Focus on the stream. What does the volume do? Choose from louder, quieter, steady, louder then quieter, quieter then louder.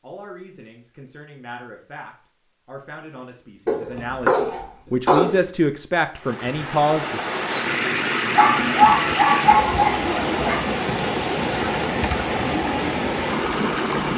steady.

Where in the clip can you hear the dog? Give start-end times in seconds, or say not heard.
3.6-5.4, 8.2-10.7.